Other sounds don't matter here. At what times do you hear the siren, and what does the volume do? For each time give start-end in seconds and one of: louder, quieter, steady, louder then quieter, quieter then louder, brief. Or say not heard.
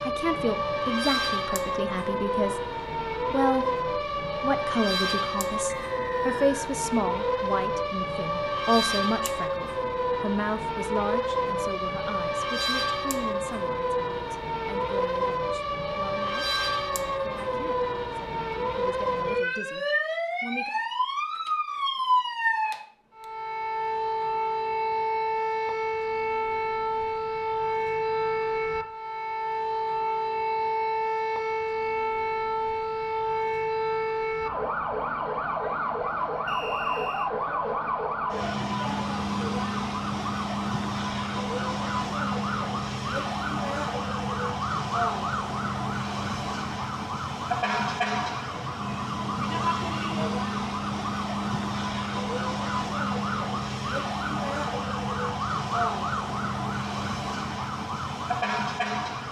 0.0-59.2 steady.